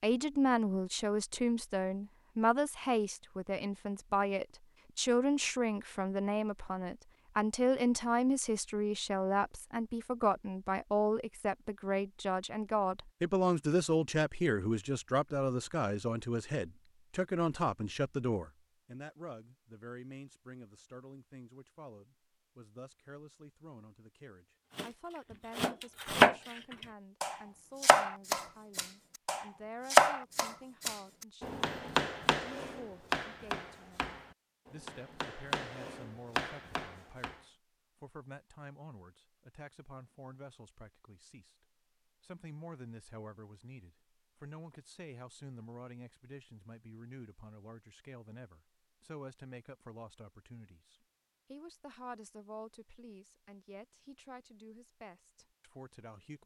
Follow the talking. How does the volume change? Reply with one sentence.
The loudness of the talking goes down.